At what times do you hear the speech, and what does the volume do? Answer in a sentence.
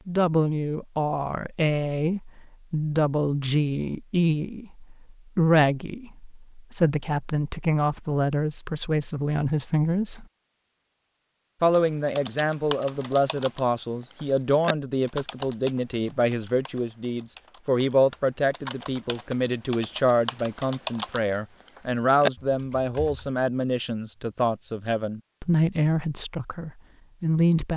You can hear the speech from 0.1 to 10.2 s, at a steady volume; and from 11.6 to 27.7 s, at a steady volume.